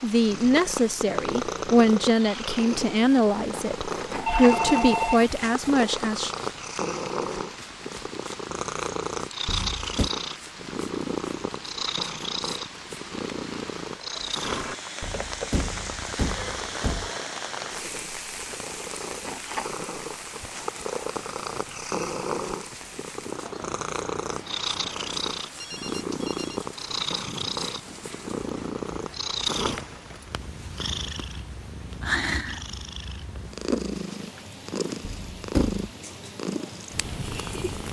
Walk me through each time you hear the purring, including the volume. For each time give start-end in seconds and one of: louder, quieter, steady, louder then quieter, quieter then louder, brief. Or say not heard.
0.0-37.8 steady.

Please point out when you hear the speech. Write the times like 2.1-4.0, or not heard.
0.0-6.3.